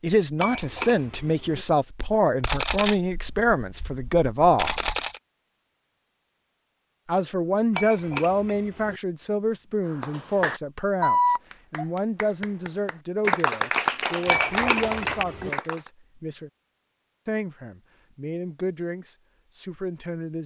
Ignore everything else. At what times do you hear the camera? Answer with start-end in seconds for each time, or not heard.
2.4-5.2.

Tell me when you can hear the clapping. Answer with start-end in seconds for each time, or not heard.
9.9-15.9.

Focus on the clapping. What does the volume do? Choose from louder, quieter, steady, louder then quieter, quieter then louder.
quieter then louder.